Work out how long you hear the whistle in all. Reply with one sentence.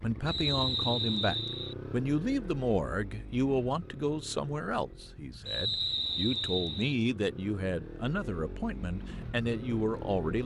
The whistle can be heard for 3 seconds in total.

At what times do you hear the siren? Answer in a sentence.
You can't hear the siren here.